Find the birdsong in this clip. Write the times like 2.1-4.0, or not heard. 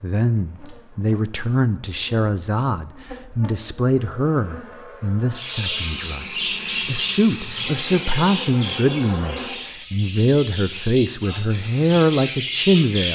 5.3-13.1.